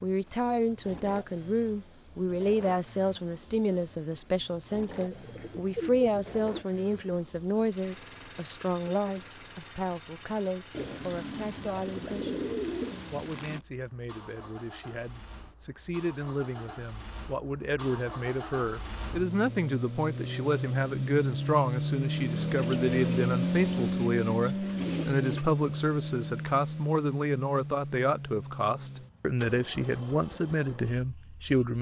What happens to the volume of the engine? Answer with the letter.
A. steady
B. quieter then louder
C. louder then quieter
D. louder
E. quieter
C.